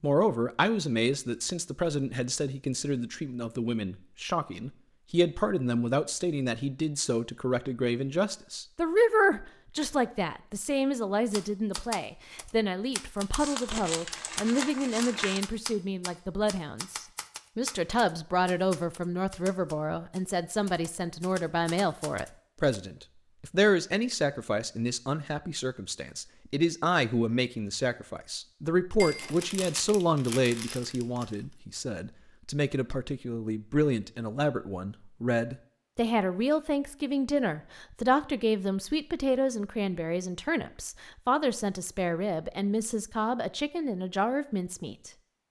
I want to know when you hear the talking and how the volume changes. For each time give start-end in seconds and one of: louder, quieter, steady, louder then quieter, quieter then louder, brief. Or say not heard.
0.0-45.1 steady.